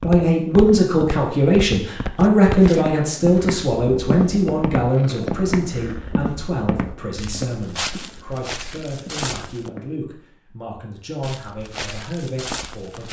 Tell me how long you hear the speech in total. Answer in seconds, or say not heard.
13 s.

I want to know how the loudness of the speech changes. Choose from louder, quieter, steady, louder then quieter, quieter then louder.
quieter.